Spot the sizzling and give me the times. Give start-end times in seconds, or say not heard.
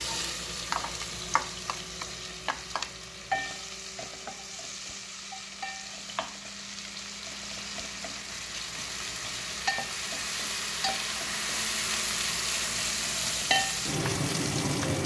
0.0-15.0.